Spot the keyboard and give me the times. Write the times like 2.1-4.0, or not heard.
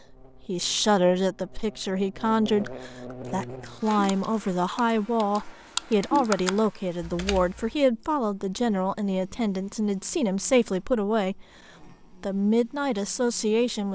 2.6-7.6.